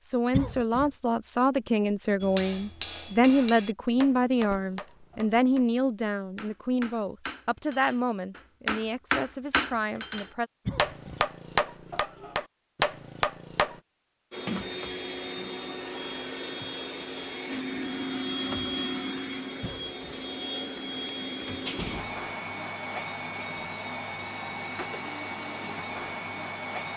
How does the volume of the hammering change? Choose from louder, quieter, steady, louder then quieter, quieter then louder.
quieter then louder.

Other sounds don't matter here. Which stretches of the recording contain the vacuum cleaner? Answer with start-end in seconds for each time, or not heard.
14.3-26.9.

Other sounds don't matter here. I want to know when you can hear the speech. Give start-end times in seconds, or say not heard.
0.0-10.5.